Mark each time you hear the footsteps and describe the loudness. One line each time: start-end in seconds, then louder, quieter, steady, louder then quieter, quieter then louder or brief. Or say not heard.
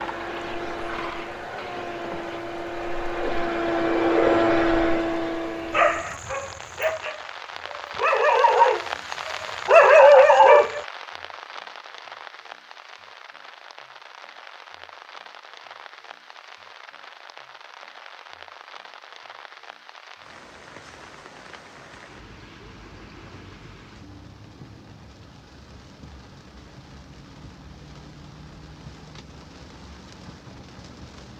not heard.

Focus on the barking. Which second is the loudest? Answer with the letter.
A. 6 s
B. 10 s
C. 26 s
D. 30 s
B.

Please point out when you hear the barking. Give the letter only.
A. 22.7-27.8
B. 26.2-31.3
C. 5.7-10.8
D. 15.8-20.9
C.